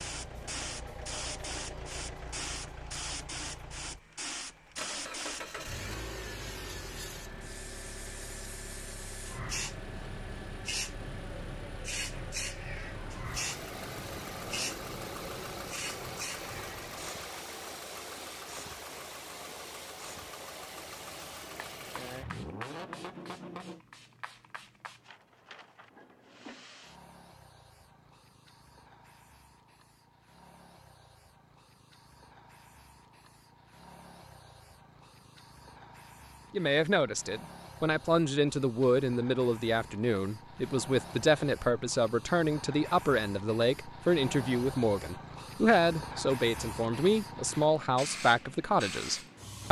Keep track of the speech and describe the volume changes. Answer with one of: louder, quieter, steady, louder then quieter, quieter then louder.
steady.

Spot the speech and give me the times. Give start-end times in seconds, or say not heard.
36.5-49.6.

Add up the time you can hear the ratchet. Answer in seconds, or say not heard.
not heard.